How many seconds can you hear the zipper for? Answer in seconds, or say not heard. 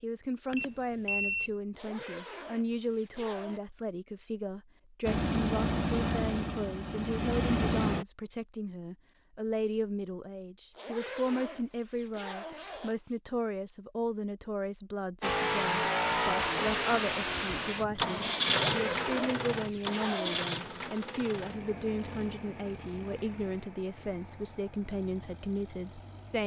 6 s.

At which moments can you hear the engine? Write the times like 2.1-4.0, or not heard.
5.0-8.1, 15.2-26.4.